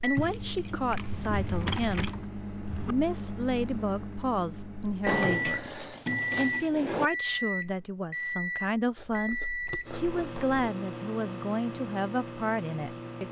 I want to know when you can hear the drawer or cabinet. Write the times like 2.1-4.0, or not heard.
1.0-3.0, 5.0-7.1, 10.2-10.6.